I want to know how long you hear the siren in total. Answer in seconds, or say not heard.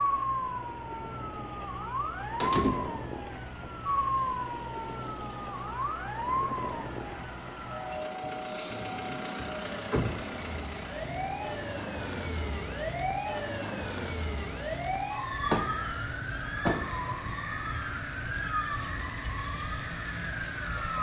21 s.